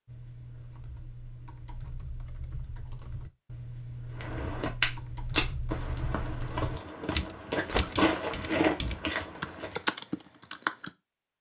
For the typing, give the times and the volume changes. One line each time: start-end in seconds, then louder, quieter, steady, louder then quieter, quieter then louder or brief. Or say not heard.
0.1-10.9 louder.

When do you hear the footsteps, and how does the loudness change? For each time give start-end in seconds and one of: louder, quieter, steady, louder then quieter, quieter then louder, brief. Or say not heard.
4.2-9.8 quieter then louder.